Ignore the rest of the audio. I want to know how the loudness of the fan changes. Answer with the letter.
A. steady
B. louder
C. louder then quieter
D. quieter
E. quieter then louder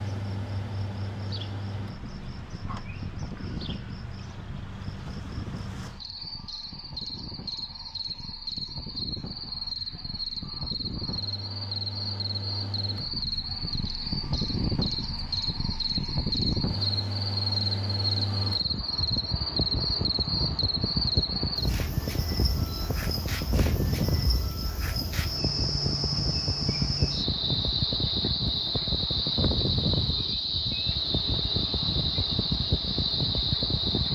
B.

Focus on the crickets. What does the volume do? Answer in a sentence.
The volume of the crickets goes up.